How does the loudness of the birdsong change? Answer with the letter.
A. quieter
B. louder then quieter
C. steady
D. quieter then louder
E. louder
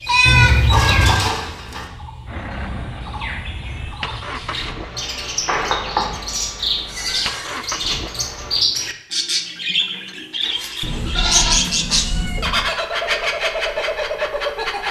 E.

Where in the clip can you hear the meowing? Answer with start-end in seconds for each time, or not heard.
0.2-1.2, 5.5-6.1, 10.4-12.5.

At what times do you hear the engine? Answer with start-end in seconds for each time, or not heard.
2.2-8.7.